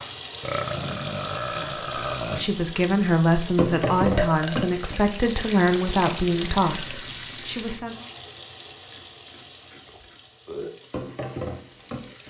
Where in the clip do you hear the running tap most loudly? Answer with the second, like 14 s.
4 s.